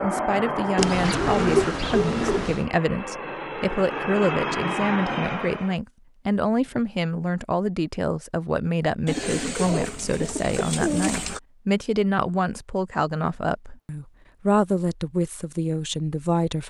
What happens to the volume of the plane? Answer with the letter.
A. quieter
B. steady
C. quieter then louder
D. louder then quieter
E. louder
C.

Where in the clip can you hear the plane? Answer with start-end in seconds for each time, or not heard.
0.0-5.8.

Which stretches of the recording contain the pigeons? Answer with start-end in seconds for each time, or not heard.
0.8-2.6, 9.1-11.4.